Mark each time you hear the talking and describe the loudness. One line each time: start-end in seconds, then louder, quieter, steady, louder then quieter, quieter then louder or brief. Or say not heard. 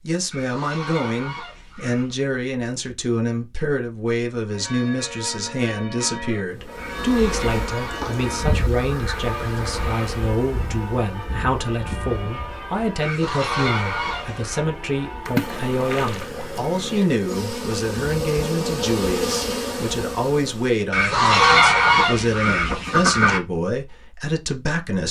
0.1-25.0 steady.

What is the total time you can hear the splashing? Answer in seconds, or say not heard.
2 s.